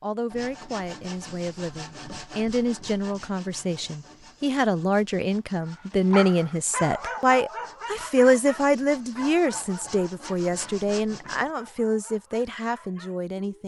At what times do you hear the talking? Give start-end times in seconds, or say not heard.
0.0-13.6.